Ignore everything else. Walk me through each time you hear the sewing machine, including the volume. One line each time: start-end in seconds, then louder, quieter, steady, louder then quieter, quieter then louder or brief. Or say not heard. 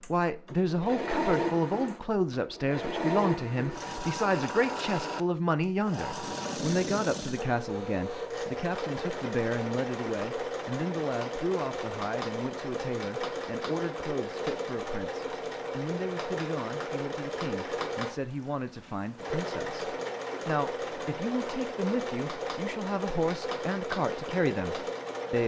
0.0-25.4 steady.